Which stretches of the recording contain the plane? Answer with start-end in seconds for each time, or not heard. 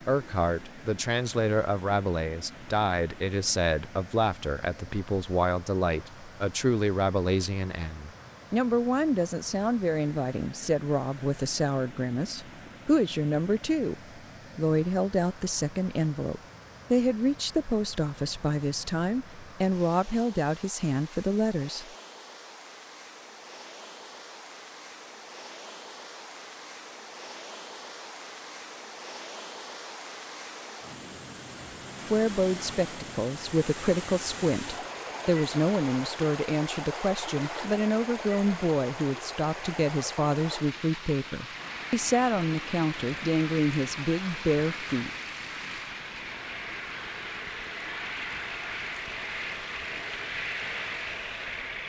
34.7-51.8.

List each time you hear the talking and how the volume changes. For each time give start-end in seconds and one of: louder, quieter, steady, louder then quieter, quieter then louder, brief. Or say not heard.
0.0-21.9 steady
32.1-45.1 steady.